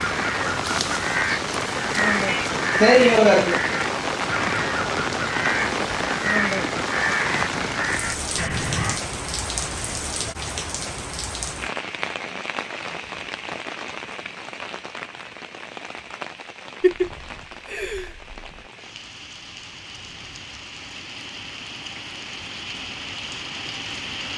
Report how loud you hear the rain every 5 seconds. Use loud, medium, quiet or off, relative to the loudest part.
loud, loud, medium, quiet, medium.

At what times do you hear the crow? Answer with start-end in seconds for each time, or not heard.
0.0-9.0.